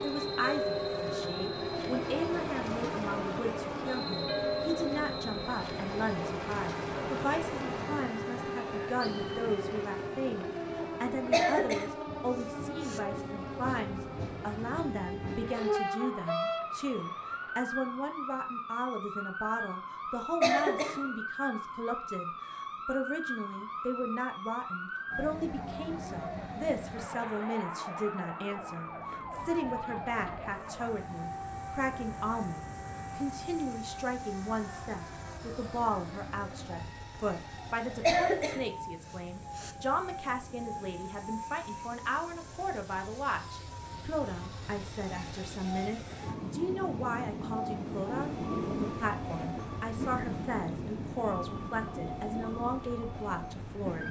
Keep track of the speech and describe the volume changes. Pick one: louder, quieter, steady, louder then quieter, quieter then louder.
steady.